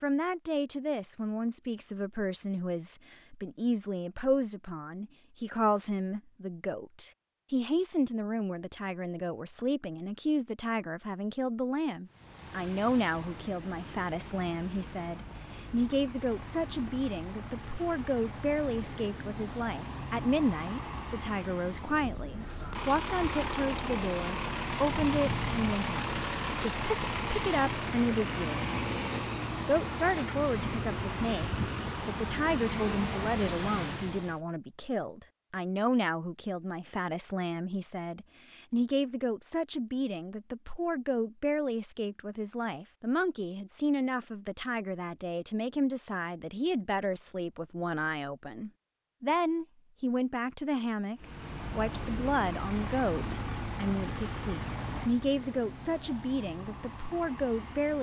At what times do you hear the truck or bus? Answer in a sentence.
You can hear the truck or bus from 12.1 to 34.4 s and from 51.1 to 57.9 s.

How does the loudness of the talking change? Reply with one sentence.
The loudness of the talking stays about the same.